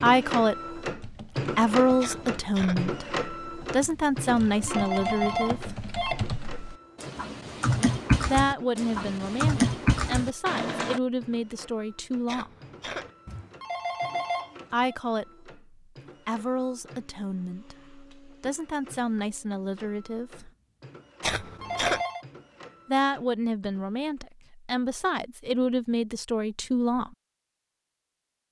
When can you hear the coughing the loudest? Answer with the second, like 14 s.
22 s.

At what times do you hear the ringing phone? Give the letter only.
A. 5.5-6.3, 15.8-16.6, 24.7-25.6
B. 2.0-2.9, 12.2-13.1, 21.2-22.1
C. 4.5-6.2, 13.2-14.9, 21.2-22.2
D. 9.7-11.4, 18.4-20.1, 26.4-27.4
C.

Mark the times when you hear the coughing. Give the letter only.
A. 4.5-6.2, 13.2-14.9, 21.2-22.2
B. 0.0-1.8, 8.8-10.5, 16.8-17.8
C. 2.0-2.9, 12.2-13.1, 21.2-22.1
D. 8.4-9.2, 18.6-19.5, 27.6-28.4
C.